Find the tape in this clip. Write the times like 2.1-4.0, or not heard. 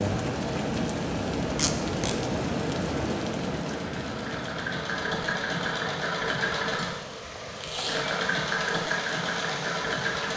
1.6-2.1, 7.5-8.2.